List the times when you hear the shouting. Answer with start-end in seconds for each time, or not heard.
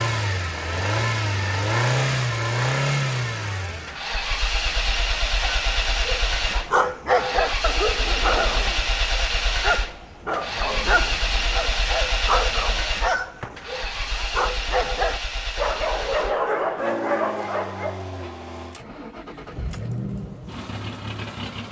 not heard.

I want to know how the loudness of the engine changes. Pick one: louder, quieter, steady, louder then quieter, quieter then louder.
quieter.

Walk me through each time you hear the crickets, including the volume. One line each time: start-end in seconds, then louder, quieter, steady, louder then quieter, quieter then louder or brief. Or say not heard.
not heard.